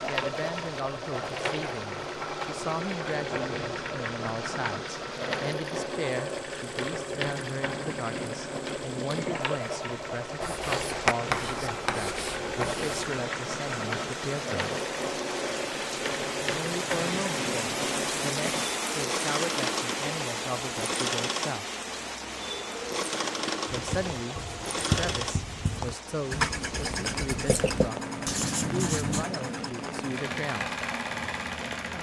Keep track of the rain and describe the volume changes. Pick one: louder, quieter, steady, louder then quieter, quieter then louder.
louder then quieter.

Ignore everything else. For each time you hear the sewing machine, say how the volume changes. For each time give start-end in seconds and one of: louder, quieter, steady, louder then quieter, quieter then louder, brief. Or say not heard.
0.0-31.9 steady.